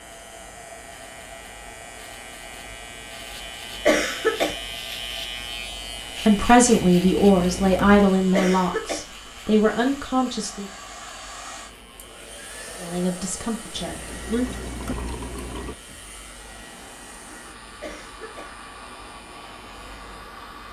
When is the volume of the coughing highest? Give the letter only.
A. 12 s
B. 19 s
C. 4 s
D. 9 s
C.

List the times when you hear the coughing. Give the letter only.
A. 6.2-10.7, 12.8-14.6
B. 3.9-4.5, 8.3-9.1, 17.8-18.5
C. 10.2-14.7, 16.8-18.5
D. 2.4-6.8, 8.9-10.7
B.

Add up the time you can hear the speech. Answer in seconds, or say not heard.
6 s.